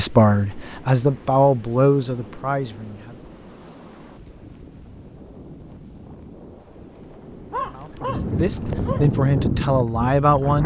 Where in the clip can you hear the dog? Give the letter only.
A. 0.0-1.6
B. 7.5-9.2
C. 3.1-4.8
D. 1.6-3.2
B.